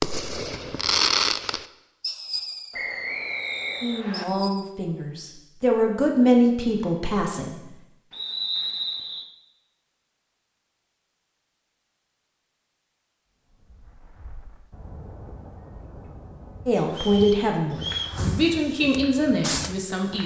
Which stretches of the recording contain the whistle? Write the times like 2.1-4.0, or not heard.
2.7-4.2, 8.1-9.2, 16.9-18.2.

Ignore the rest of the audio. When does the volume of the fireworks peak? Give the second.
1 s.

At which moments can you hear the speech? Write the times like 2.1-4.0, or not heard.
3.8-7.5, 16.6-20.2.